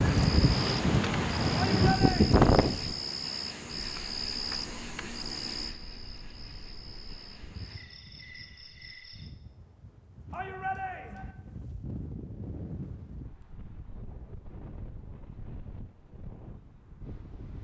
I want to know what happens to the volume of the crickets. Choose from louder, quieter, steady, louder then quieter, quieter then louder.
quieter.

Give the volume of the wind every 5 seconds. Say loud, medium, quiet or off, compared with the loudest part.
loud, quiet, quiet, quiet.